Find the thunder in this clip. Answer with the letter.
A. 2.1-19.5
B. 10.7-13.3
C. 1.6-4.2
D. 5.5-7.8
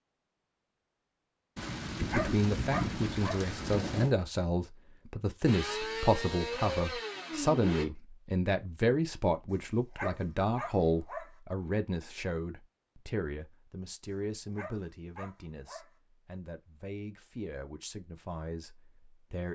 C.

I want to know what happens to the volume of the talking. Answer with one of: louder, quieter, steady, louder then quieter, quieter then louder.
quieter.